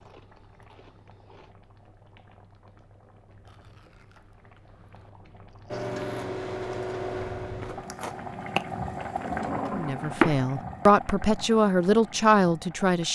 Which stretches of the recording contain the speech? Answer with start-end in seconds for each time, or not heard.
9.7-13.0.